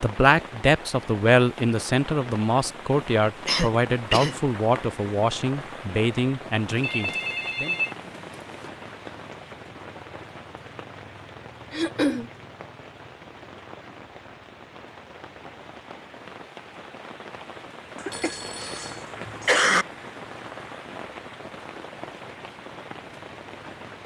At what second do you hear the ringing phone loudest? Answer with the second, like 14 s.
8 s.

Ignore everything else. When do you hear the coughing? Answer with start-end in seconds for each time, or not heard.
3.5-4.8, 11.7-12.3, 18.0-19.9.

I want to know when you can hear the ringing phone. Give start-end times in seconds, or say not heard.
6.7-8.7, 18.1-19.1.